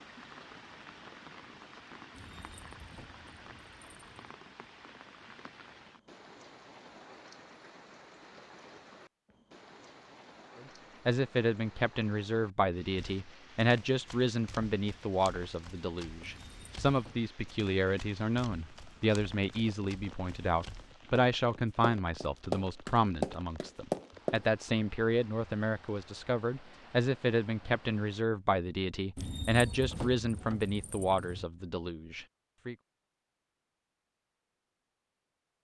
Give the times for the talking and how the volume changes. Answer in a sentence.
The talking can be heard from 10.6 to 32.8 s, at a steady volume.